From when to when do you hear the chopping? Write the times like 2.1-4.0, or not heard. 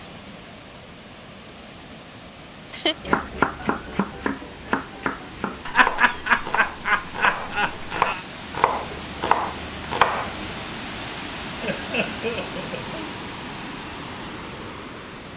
3.0-10.6.